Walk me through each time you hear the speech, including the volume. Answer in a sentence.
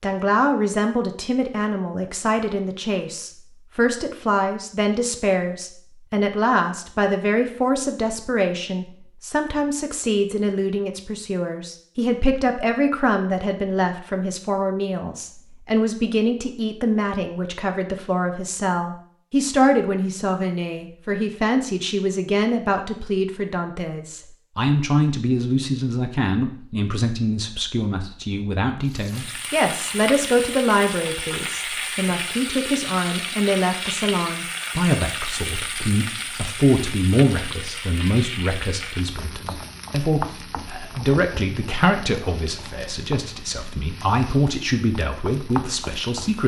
You can hear the speech from 0.0 to 46.4 s, at a steady volume.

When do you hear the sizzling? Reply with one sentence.
The sizzling can be heard from 28.9 to 46.4 s.